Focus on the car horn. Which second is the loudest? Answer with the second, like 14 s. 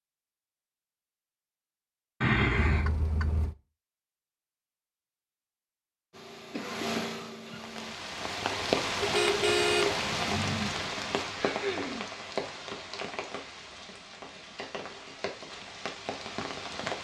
10 s.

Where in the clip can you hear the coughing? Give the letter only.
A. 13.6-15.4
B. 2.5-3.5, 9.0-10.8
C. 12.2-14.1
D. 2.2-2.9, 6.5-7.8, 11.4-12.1
D.